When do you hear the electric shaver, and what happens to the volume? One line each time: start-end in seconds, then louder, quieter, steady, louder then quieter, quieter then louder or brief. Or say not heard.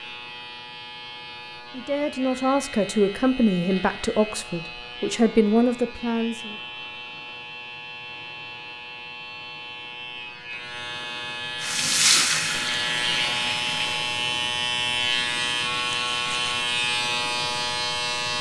0.0-18.3 louder.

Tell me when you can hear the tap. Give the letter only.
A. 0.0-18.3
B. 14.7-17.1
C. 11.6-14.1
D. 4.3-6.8
C.